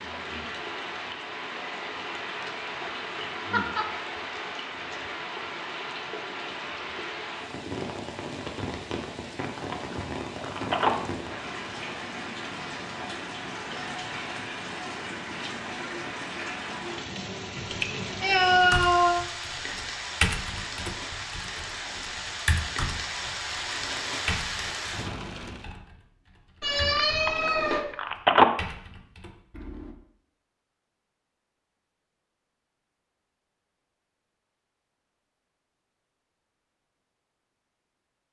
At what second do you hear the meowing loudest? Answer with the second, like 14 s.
19 s.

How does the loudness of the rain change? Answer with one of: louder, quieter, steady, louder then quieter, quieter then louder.
steady.